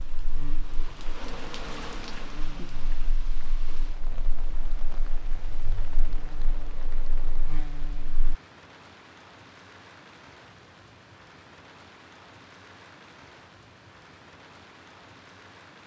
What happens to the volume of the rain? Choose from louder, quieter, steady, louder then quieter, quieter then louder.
quieter.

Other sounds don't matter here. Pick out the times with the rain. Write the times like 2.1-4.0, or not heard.
0.0-15.8.